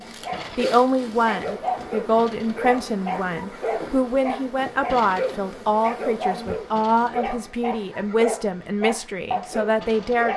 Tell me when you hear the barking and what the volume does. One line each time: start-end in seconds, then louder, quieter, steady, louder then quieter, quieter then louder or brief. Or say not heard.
0.0-10.3 steady.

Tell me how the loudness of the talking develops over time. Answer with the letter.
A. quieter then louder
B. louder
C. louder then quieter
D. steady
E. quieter
D.